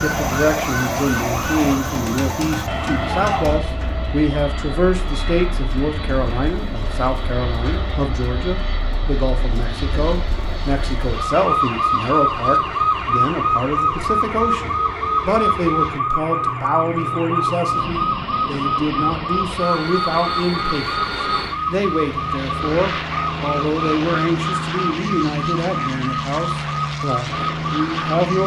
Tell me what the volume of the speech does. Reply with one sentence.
The loudness of the speech stays about the same.